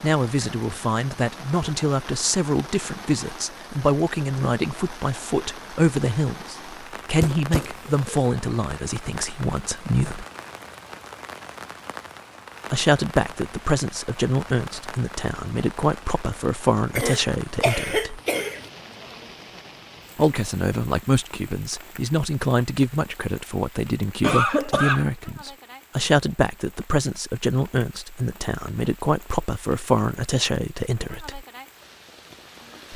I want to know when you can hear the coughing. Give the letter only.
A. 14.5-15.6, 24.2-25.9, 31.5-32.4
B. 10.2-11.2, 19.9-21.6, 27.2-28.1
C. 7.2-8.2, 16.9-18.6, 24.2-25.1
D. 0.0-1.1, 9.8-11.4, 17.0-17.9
C.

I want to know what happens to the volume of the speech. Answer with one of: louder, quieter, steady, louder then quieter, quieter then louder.
steady.